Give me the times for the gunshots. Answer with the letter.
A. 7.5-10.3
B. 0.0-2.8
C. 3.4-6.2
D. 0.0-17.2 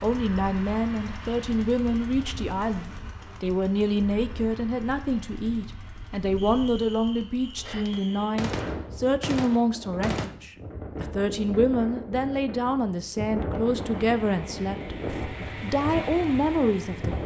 A.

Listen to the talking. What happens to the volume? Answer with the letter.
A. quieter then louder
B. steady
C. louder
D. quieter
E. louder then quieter
B.